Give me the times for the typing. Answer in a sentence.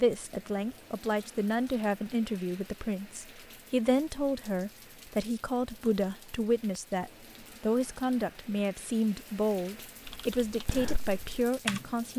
You can hear the typing from 10.1 to 11.8 s.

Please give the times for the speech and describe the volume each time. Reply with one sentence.
The speech can be heard from 0.0 to 12.1 s, at a steady volume.